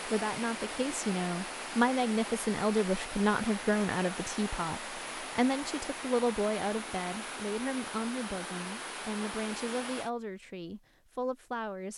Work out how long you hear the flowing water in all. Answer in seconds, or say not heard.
10 s.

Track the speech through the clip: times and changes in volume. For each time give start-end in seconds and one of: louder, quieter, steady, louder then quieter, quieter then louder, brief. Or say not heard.
0.1-11.9 quieter.